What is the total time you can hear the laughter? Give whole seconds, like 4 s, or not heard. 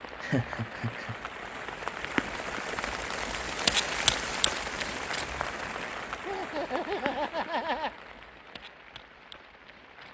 3 s.